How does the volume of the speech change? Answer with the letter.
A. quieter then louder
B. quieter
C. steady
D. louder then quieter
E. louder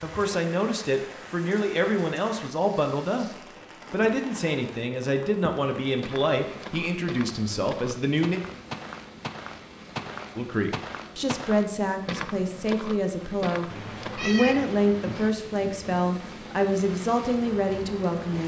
C.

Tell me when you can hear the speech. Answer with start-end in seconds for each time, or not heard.
0.0-8.4, 10.3-18.4.